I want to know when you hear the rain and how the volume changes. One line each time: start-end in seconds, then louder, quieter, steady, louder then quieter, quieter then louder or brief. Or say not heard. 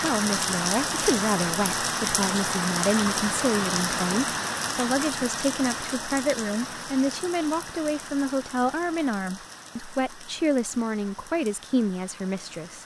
0.0-12.8 quieter.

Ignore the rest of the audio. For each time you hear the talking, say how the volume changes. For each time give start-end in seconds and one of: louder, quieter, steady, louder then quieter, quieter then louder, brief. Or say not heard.
0.0-12.8 steady.